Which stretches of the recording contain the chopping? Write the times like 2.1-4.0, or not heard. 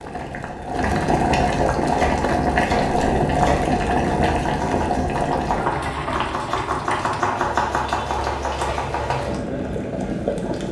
1.9-9.3.